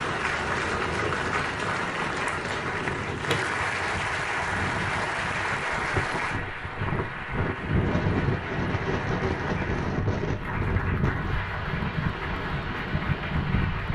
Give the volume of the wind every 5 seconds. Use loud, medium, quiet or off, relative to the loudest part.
medium, loud, loud.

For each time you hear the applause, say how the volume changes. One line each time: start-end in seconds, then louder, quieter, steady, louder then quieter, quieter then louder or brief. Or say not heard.
0.0-13.9 quieter.